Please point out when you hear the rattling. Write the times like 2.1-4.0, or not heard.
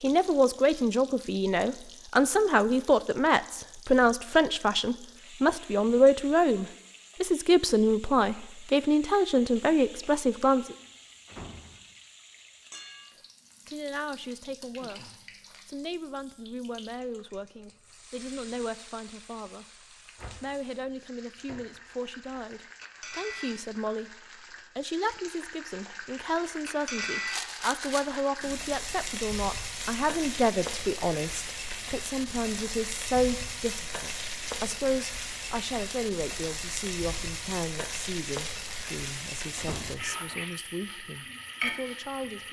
27.2-28.2.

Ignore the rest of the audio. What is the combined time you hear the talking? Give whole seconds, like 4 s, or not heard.
38 s.